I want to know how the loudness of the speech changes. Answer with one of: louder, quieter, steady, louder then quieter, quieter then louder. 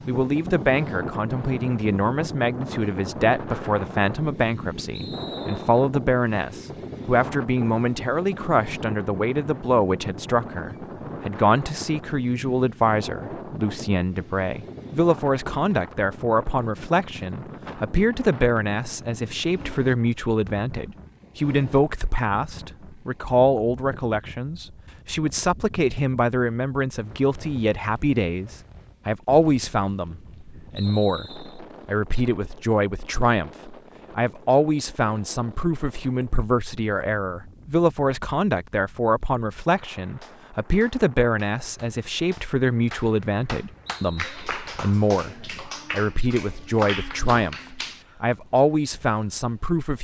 steady.